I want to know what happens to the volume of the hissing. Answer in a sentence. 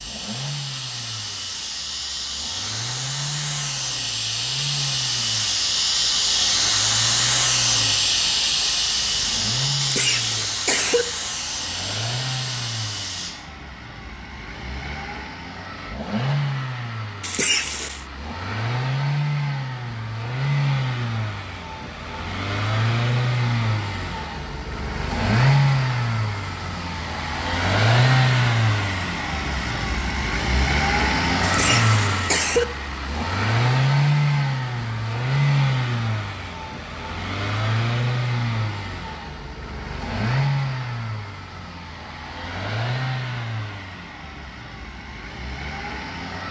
The volume of the hissing goes up, then down.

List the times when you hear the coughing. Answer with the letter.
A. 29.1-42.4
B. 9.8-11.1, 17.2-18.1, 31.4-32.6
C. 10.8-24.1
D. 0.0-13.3
B.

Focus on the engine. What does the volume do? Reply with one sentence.
The loudness of the engine goes up, then down.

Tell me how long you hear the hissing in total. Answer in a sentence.
The hissing can be heard for 13 seconds in total.